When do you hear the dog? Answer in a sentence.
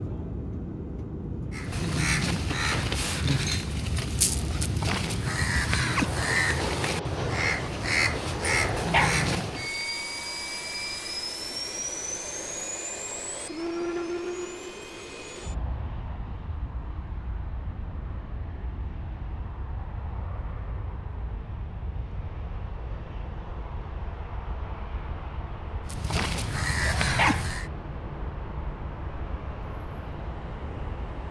You can hear the dog from 8.7 to 9.2 s and from 26.8 to 27.4 s.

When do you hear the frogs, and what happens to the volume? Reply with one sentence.
The frogs can't be heard in this clip.